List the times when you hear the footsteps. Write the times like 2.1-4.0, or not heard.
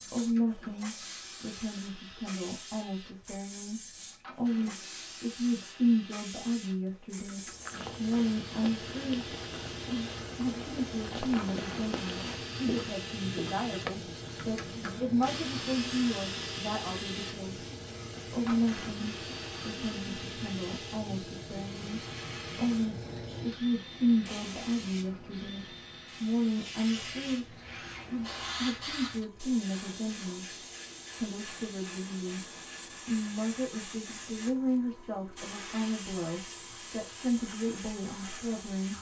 7.3-13.9.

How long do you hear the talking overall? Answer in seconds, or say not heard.
38 s.